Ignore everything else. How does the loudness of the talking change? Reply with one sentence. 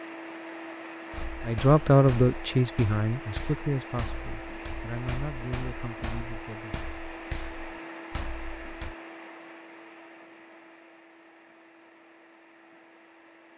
The volume of the talking goes down.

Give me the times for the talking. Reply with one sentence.
You can hear the talking from 1.4 to 6.8 s.